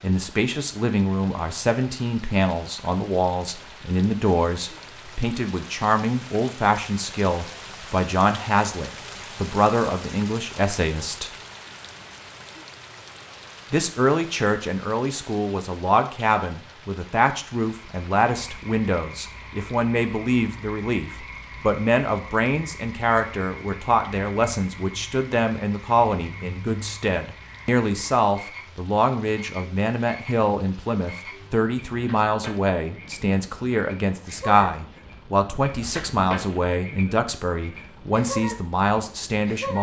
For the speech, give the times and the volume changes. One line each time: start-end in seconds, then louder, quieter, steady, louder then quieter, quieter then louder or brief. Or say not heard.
0.0-11.3 steady
13.7-39.7 steady.